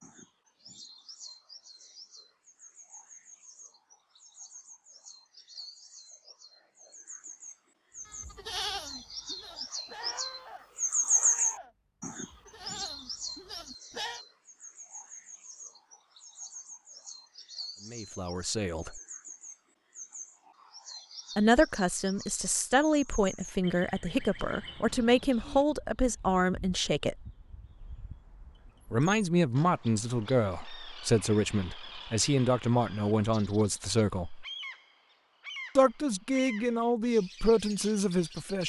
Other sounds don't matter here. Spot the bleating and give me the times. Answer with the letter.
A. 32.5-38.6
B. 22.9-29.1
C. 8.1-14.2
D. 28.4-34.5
C.